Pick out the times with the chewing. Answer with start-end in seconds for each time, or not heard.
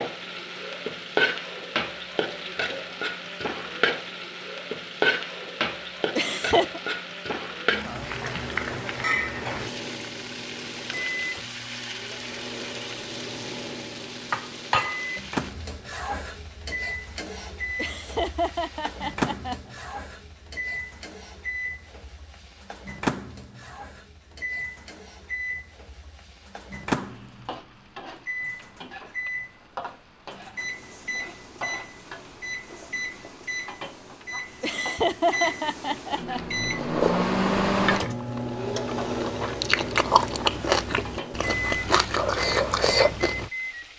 36.4-43.5.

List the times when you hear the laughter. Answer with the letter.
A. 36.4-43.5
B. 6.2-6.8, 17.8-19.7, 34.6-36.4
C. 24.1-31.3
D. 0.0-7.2
B.